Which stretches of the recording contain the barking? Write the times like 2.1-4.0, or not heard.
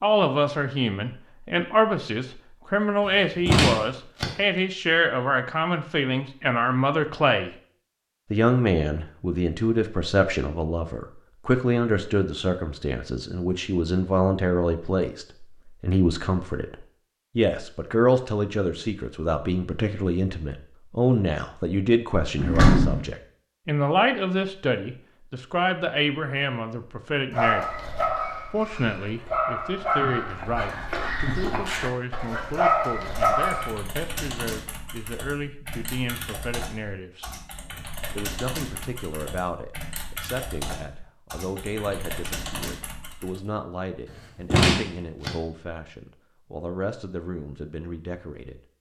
27.3-33.8.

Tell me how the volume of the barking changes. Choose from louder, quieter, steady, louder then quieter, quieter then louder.
louder.